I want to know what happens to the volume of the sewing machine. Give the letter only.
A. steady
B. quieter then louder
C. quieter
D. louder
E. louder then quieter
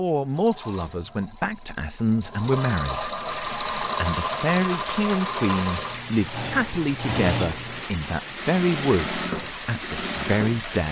D.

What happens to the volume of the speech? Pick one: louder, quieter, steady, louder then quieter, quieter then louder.
steady.